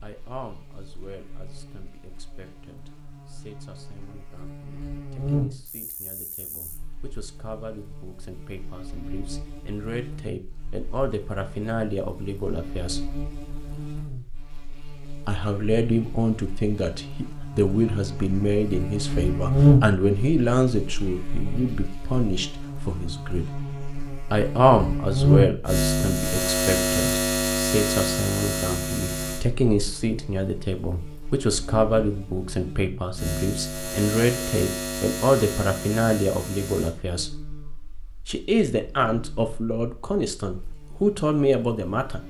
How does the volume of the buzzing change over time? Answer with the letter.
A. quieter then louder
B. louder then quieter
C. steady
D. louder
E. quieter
B.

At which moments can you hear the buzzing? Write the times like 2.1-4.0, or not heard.
0.0-42.2.